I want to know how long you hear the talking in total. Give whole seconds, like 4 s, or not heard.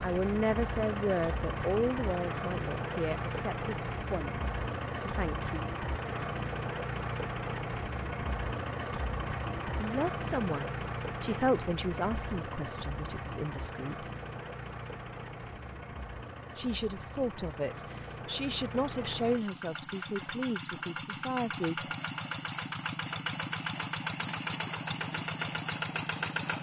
15 s.